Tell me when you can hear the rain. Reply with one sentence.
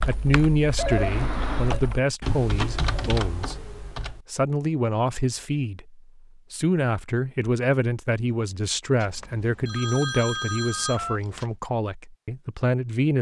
You can't hear the rain here.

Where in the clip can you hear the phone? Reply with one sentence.
You can hear the phone from 0.8 to 1.8 s and from 9.0 to 11.5 s.